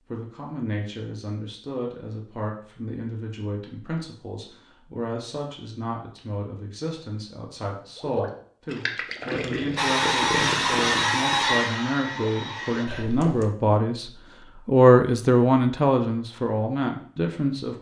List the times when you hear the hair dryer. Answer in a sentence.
The hair dryer can be heard from 9.8 to 12.8 s.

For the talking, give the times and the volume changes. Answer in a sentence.
The talking can be heard from 0.1 to 17.7 s, getting louder.